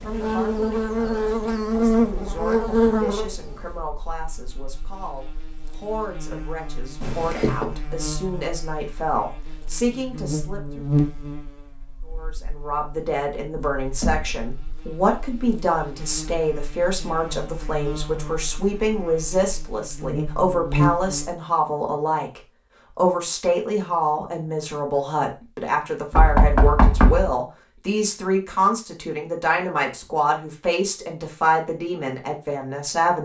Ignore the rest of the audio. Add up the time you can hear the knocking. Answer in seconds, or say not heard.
2 s.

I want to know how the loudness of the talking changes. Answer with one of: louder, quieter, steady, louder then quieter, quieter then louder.
louder.